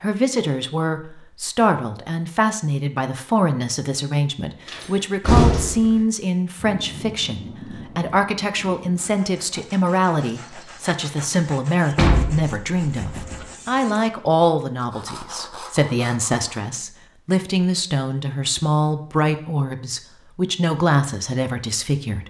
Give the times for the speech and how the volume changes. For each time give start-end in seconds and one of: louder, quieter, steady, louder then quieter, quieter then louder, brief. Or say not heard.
0.0-22.2 steady.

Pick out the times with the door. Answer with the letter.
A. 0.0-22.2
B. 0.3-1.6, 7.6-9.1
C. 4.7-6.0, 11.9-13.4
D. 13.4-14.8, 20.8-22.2
C.